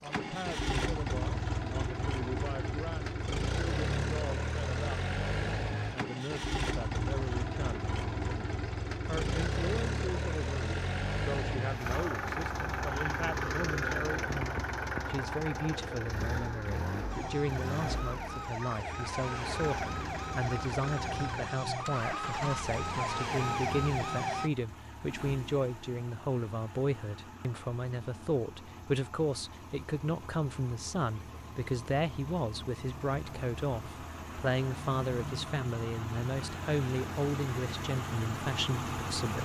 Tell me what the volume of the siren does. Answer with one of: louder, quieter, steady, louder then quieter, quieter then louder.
louder.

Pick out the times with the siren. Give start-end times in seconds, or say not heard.
17.1-24.5.